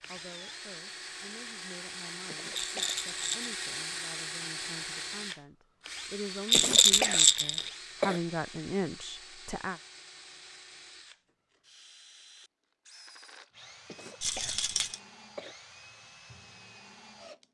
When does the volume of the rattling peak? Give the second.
7 s.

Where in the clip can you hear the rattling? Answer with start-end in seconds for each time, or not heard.
2.5-3.5, 6.5-7.7, 14.2-15.0.